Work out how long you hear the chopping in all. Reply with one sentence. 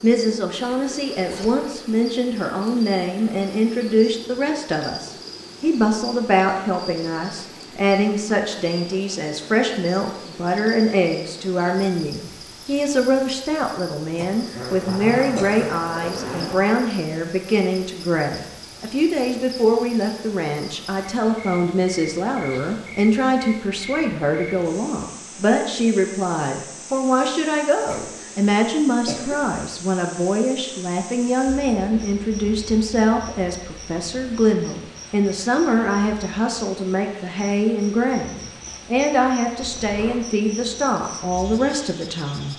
You can't hear the chopping here.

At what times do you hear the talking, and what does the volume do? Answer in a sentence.
The talking can be heard from 0.0 to 42.5 s, at a steady volume.